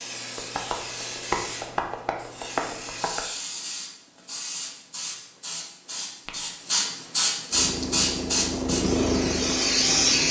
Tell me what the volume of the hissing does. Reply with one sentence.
The volume of the hissing goes up.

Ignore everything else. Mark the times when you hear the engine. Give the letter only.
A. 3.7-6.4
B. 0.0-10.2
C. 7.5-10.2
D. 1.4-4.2
C.